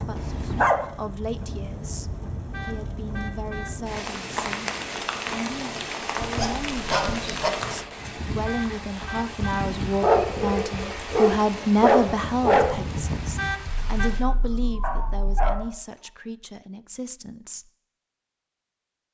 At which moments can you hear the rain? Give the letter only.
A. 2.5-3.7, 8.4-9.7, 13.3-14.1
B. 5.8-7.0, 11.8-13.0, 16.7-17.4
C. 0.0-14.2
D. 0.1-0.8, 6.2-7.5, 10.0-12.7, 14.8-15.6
C.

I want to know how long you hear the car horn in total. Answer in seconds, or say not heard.
3 s.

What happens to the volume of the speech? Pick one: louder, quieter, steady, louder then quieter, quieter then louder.
louder then quieter.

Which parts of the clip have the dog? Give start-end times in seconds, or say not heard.
0.1-0.8, 6.2-7.5, 10.0-12.7, 14.8-15.6.